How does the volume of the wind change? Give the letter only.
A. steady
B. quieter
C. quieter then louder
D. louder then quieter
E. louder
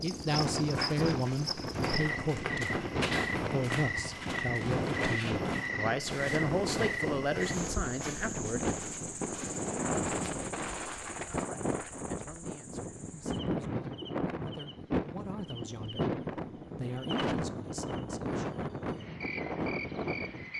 A.